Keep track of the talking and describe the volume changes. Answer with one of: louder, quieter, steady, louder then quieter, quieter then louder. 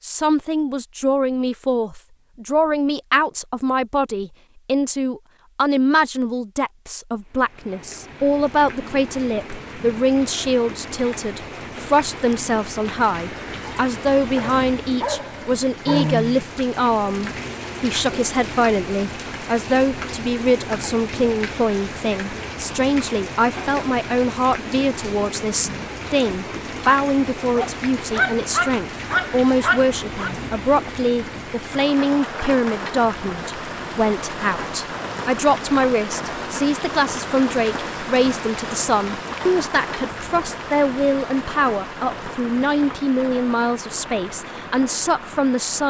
steady.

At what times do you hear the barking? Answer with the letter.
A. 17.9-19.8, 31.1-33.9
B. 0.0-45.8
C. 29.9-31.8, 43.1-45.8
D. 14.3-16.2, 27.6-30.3
D.